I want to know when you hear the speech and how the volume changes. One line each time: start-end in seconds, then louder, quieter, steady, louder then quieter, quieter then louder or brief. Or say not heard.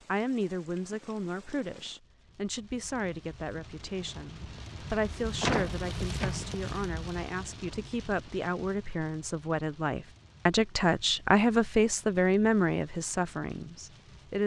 0.1-14.4 louder.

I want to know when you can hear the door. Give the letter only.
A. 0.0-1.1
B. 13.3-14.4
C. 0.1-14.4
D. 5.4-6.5
D.